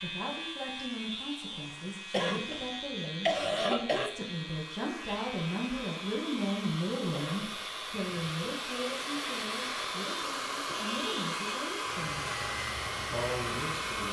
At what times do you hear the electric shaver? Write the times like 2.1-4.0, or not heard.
0.0-14.0.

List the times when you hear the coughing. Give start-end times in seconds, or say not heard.
2.1-4.1, 7.1-7.5.